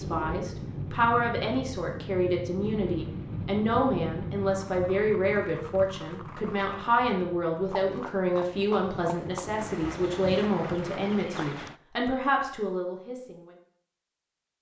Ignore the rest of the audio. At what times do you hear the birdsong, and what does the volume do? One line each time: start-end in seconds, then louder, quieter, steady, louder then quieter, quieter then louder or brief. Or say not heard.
not heard.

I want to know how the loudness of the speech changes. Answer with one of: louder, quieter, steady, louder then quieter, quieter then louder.
steady.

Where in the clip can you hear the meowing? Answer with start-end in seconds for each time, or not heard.
not heard.